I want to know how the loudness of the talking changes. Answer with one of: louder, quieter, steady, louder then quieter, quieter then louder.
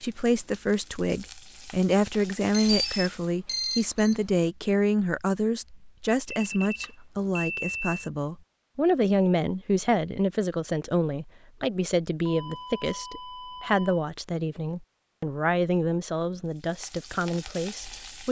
steady.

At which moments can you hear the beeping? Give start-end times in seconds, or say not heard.
2.5-4.2, 6.2-8.0, 12.2-14.1.